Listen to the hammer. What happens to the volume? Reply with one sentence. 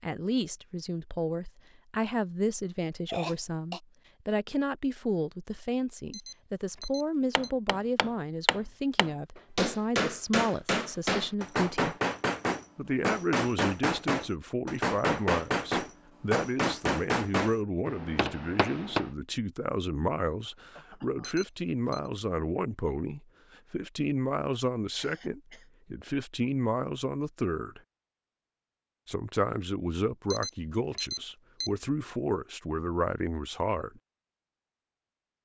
The loudness of the hammer stays about the same.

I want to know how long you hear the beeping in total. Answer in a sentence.
The beeping can be heard for 4 seconds in total.